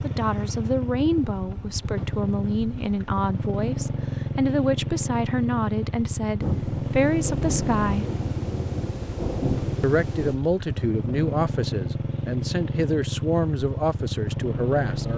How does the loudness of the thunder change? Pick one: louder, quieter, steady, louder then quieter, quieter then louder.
louder.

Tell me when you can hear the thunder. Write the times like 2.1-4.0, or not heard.
6.4-10.4.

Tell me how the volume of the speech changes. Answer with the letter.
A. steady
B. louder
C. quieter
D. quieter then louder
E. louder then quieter
A.